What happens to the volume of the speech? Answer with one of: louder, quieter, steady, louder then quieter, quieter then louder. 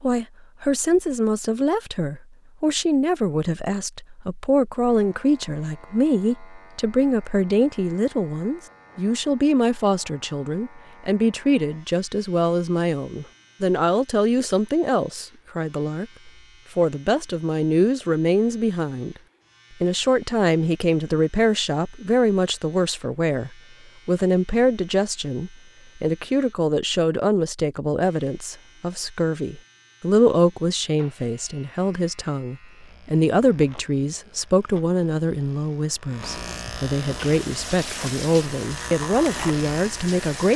steady.